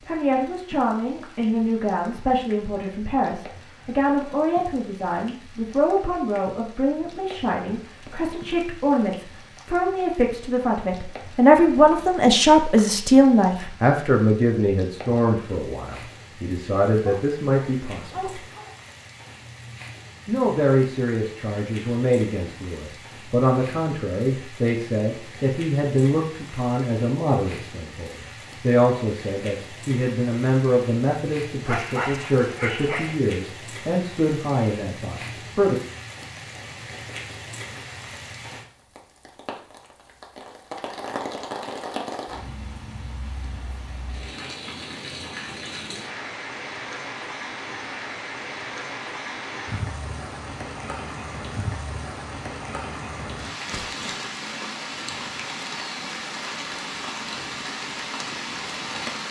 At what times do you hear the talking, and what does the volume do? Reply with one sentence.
The talking can be heard from 0.1 to 18.4 s, getting louder then quieter; and from 20.2 to 35.8 s, at a steady volume.